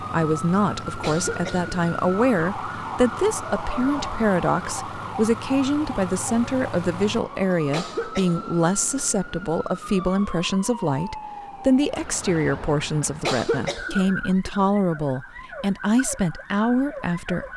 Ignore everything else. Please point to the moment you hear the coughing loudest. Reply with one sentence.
The loudest moment of the coughing is at 13 seconds.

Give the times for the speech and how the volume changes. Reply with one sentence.
You can hear the speech from 0.0 to 17.5 s, at a steady volume.